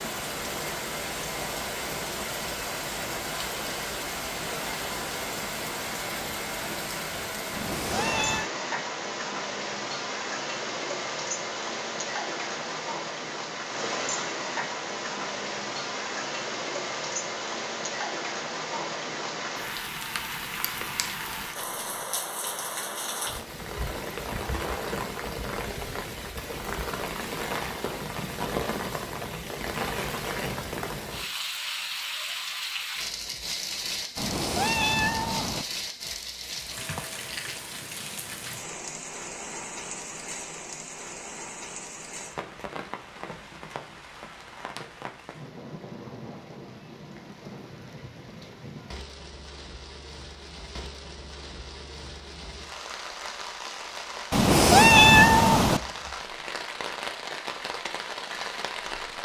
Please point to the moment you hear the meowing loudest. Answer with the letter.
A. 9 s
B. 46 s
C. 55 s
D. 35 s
C.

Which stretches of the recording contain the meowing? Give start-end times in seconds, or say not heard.
7.5-8.5, 34.1-35.6, 54.3-55.8.